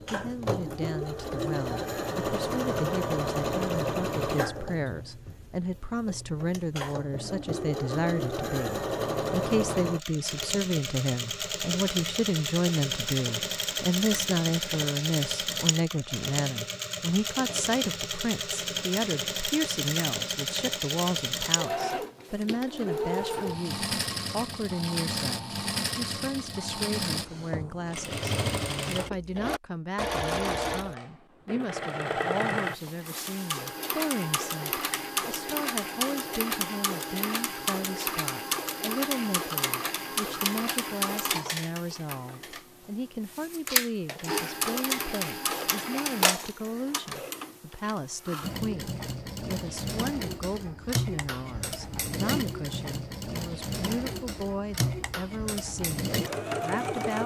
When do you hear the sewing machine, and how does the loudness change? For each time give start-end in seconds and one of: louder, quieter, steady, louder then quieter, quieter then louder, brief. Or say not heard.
0.0-57.2 steady.